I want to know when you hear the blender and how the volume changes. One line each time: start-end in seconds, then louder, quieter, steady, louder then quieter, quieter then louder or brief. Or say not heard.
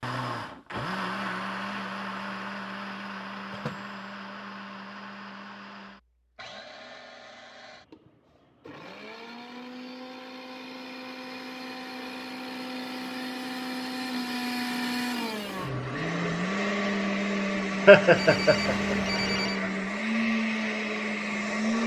0.0-21.8 quieter then louder.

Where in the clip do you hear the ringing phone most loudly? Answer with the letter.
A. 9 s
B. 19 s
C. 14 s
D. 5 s
B.